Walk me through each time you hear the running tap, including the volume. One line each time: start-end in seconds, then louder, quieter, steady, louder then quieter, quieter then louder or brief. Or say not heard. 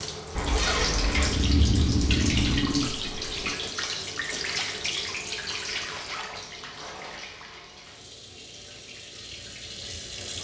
0.0-10.3 quieter.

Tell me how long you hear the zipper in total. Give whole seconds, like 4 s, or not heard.
3 s.